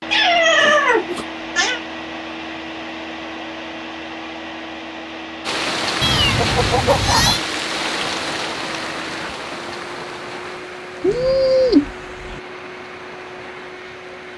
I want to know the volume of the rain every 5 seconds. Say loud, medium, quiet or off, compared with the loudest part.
off, loud, quiet.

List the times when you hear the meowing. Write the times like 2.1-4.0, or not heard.
0.1-1.8, 6.0-7.4, 11.0-12.4.